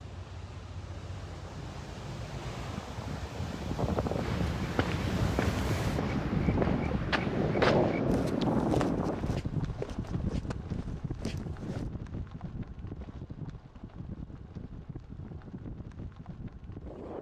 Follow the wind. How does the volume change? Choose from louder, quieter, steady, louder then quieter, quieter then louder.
louder then quieter.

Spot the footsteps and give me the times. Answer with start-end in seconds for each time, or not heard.
4.2-11.9.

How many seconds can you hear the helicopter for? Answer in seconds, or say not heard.
not heard.